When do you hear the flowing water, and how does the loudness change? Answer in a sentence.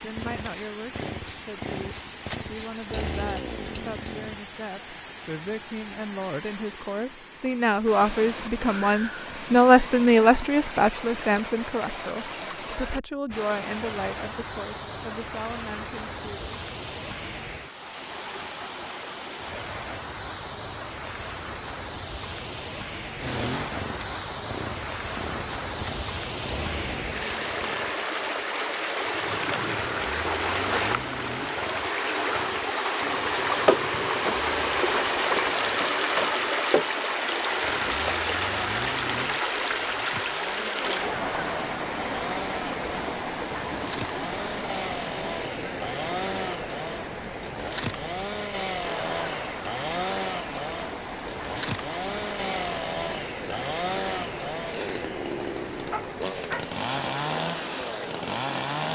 The flowing water can be heard from 0.0 to 58.9 s, getting louder then quieter.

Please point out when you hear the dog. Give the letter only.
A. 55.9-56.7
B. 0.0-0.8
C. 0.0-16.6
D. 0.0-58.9
A.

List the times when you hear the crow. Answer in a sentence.
The crow can't be heard in this clip.